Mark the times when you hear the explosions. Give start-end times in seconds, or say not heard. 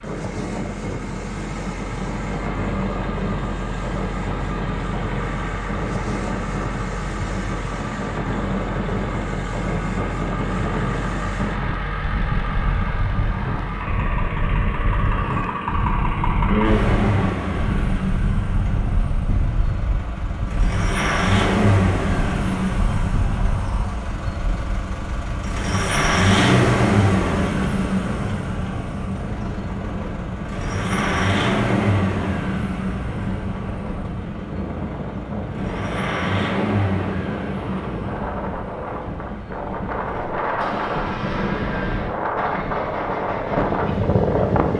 not heard.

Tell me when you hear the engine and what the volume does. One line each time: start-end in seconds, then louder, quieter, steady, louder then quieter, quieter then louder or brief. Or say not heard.
0.0-44.7 louder then quieter.